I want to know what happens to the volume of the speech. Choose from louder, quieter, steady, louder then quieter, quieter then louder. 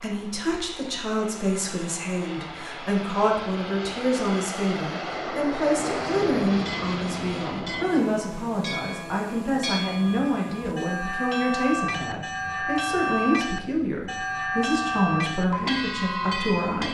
steady.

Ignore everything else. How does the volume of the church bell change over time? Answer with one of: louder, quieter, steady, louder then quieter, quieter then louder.
louder.